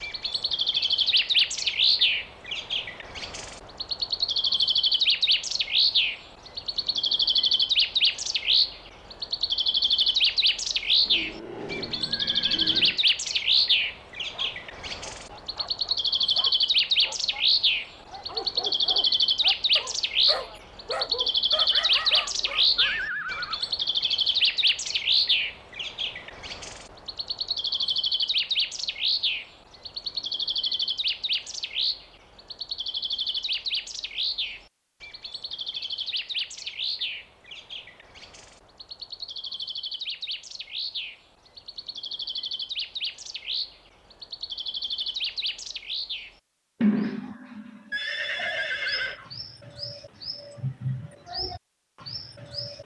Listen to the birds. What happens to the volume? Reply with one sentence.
The volume of the birds goes down.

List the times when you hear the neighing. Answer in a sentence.
The neighing can be heard from 11.1 to 13.0 s, from 22.8 to 23.6 s and from 47.9 to 49.2 s.